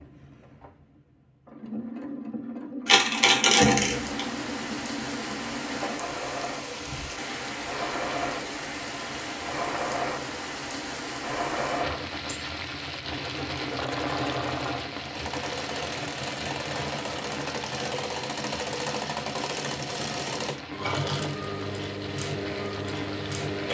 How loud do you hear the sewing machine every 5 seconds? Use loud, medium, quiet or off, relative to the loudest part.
medium, loud, loud, loud, loud.